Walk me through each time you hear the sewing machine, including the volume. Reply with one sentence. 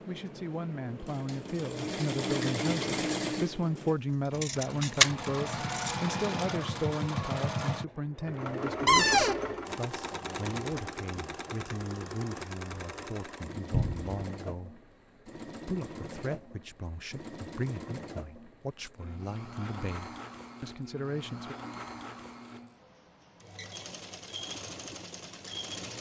The sewing machine can be heard from 0.0 to 25.9 s, getting quieter.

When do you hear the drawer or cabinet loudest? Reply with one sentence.
The loudest moment of the drawer or cabinet is at 9 seconds.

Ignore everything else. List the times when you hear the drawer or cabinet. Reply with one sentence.
The drawer or cabinet can be heard from 8.8 to 9.4 s and from 13.7 to 14.1 s.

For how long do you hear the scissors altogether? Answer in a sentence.
You can hear the scissors for 2 seconds altogether.